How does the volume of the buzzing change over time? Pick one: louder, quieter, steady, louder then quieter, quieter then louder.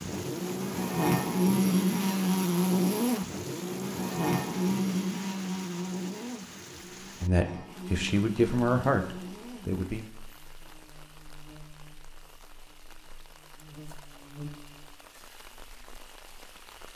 quieter.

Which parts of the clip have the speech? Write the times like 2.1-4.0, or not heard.
7.2-10.1.